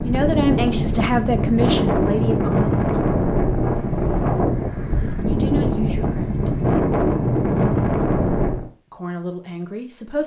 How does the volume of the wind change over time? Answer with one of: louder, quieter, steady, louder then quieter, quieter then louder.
steady.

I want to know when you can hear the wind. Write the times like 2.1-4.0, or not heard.
0.0-8.7.